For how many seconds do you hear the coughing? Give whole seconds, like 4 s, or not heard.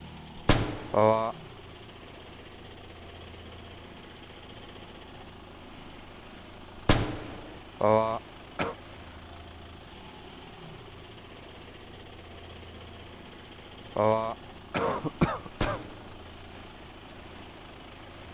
3 s.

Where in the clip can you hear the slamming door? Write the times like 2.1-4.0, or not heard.
0.3-1.1, 6.8-7.5, 15.5-16.2.